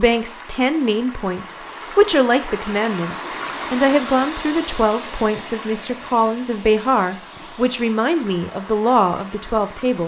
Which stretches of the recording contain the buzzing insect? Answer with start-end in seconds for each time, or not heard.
not heard.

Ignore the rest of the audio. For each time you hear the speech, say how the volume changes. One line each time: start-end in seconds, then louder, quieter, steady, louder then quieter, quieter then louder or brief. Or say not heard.
0.0-10.0 steady.